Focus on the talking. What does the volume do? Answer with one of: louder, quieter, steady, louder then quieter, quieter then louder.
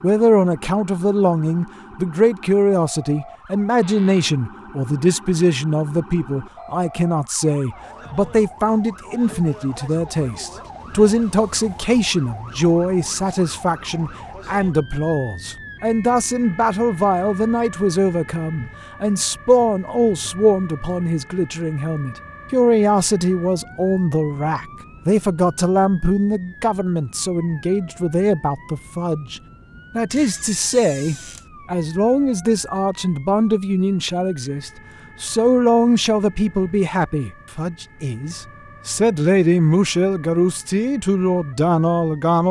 steady.